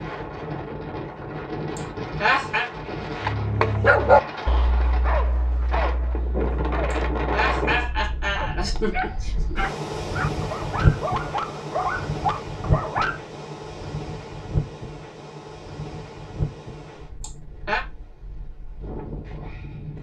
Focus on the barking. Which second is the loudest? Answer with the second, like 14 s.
4 s.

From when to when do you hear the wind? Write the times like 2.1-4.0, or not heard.
0.0-19.9.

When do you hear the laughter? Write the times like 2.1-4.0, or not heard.
1.8-2.7, 6.9-9.7, 17.2-17.9.